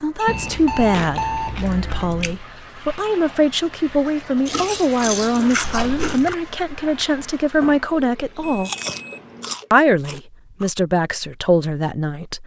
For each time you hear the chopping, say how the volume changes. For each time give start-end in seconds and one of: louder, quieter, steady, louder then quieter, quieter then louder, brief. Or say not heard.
not heard.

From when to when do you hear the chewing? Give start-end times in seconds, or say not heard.
0.2-2.4, 4.5-6.3, 8.7-10.7.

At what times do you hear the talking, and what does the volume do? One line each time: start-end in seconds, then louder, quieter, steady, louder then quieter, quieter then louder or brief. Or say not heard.
0.0-8.7 steady
9.7-12.4 brief.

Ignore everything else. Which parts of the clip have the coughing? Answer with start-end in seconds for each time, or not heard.
not heard.